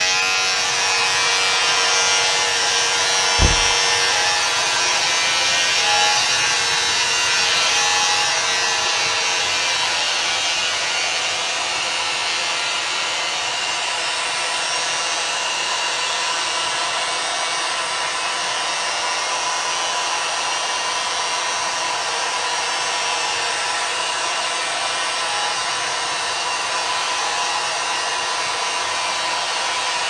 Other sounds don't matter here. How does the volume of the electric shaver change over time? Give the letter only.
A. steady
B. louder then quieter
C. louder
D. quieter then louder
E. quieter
E.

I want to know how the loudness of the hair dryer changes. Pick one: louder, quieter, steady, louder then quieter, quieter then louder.
steady.